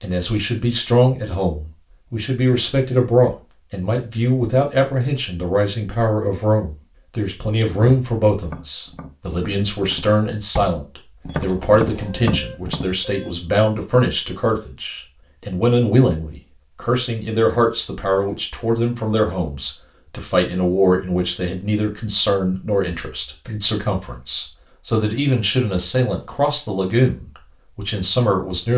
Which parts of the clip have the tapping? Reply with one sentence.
You can hear the tapping from 7.7 to 12.9 s.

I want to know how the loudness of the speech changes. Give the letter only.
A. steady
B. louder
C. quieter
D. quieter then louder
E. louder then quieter
A.